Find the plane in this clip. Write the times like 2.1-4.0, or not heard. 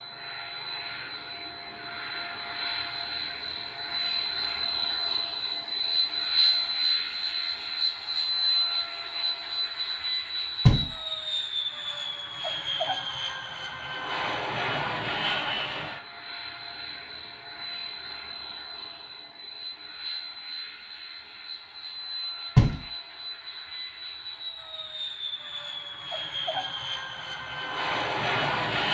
0.0-28.8.